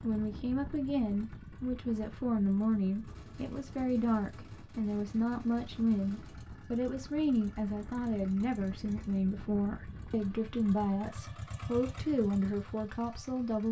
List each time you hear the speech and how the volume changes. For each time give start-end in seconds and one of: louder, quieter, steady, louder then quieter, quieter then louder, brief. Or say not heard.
0.0-13.6 steady.